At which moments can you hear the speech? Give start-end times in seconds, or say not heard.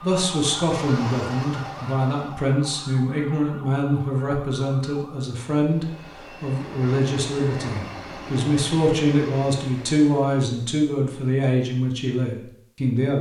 0.0-13.1.